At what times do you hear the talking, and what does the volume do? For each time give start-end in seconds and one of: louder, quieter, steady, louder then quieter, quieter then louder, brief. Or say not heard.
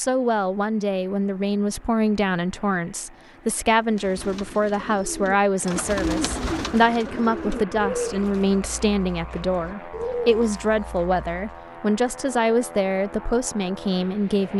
0.0-14.5 steady.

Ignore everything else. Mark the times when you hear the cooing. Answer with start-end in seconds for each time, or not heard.
3.9-11.6.